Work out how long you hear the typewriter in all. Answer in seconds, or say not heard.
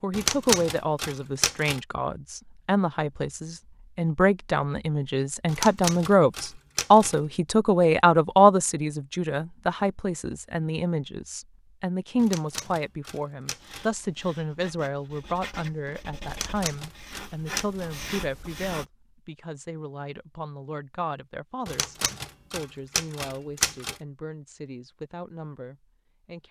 9 s.